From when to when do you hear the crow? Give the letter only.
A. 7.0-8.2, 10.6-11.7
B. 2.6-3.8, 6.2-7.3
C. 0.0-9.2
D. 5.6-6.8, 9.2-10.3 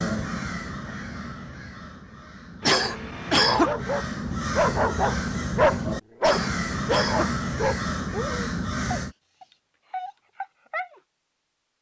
C.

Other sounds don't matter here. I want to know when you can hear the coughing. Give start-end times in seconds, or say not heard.
2.6-3.8, 6.2-7.3.